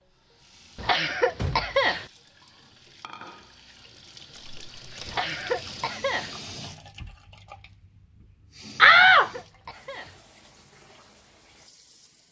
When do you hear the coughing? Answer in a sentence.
You can hear the coughing from 0.8 to 2.0 s, from 5.0 to 6.3 s and from 9.1 to 10.2 s.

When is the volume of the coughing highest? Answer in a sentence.
The volume of the coughing peaks at 2 seconds.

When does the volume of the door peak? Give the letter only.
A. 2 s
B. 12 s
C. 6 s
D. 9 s
D.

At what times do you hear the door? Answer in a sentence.
The door can be heard from 1.1 to 1.9 s, from 4.3 to 5.2 s and from 8.8 to 9.3 s.